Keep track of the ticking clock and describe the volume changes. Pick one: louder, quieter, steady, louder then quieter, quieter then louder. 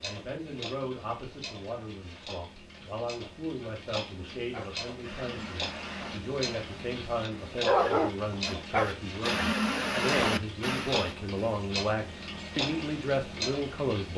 louder.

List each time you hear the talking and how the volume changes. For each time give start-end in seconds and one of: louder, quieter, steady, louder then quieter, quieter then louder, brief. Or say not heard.
0.0-14.1 louder.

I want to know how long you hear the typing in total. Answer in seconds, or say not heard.
not heard.